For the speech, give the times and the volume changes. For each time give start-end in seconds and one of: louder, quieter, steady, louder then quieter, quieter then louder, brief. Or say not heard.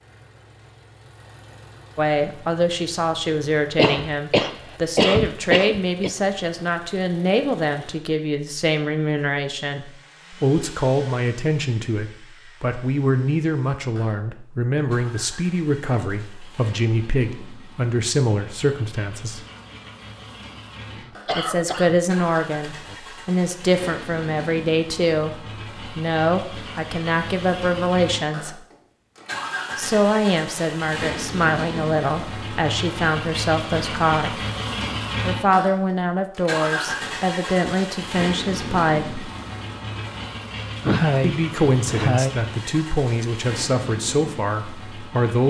1.9-19.4 steady
21.4-28.6 steady
29.8-34.4 steady
35.2-39.3 steady
41.2-45.4 quieter.